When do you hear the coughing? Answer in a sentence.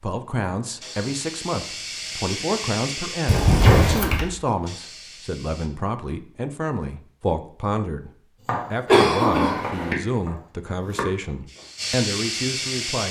The coughing can be heard from 3.2 to 4.2 s and from 8.8 to 9.9 s.